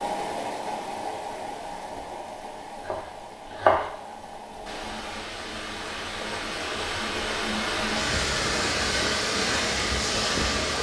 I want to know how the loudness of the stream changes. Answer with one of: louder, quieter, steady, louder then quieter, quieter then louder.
quieter then louder.